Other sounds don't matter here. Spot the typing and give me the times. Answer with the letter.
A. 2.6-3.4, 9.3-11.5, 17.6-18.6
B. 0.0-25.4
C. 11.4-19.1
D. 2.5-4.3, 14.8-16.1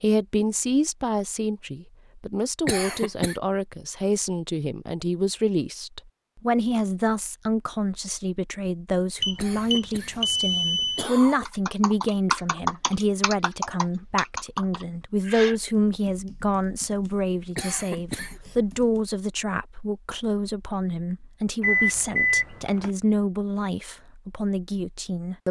C.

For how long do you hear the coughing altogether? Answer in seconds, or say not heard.
4 s.